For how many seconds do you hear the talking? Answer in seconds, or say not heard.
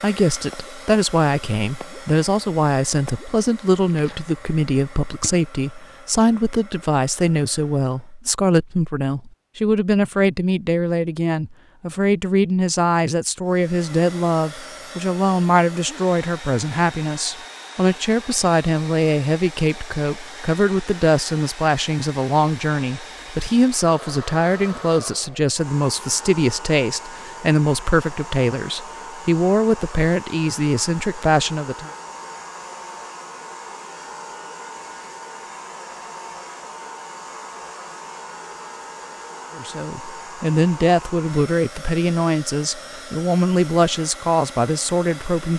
38 s.